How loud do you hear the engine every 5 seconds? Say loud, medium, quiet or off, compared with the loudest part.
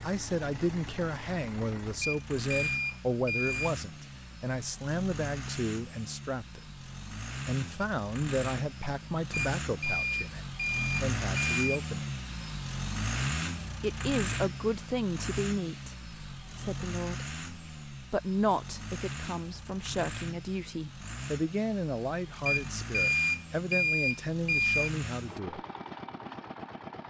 medium, medium, loud, medium, medium, medium.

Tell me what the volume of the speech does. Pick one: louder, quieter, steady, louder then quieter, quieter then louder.
steady.